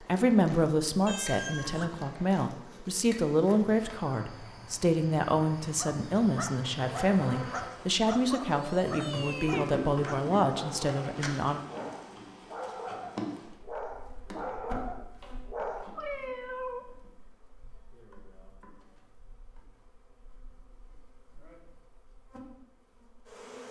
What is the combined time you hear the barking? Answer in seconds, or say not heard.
10 s.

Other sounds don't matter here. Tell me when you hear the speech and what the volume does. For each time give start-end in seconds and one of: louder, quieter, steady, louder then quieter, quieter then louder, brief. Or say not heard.
0.0-11.6 steady.